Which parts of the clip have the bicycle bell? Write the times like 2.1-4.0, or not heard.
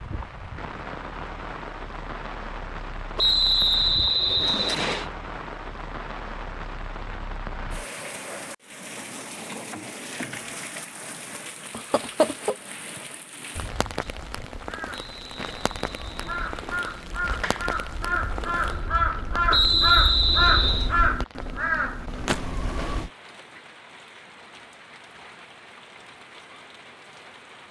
not heard.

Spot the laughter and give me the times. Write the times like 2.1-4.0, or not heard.
11.7-13.0.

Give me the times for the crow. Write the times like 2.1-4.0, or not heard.
13.6-23.1.